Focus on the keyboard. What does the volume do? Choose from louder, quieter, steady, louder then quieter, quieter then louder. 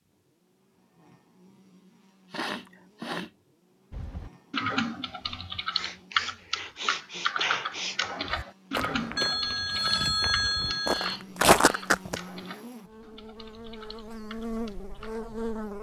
quieter.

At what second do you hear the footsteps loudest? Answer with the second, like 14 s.
12 s.